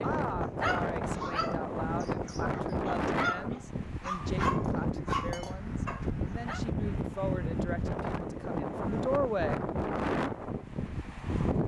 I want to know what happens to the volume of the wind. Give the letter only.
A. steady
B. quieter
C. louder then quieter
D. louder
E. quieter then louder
A.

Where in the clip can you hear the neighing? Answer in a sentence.
The neighing can't be heard in this clip.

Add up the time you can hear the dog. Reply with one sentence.
The dog can be heard for 6 seconds in total.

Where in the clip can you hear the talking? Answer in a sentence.
You can hear the talking from 0.0 to 9.7 s.